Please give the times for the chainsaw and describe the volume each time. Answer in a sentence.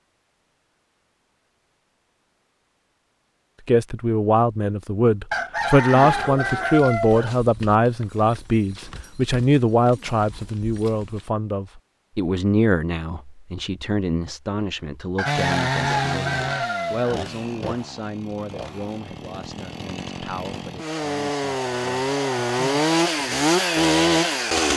The chainsaw can be heard from 15.2 to 24.7 s, getting quieter then louder.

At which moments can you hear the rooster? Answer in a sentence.
The rooster can be heard from 5.3 to 7.3 s and from 15.2 to 17.1 s.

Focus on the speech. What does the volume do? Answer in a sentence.
The loudness of the speech goes down.